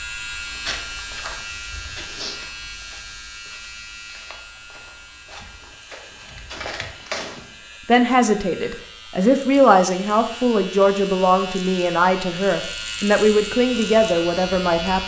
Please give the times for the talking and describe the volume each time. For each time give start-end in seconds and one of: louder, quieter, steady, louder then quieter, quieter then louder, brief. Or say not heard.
7.8-15.0 steady.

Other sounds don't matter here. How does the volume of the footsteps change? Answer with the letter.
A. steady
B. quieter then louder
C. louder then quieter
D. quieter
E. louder
B.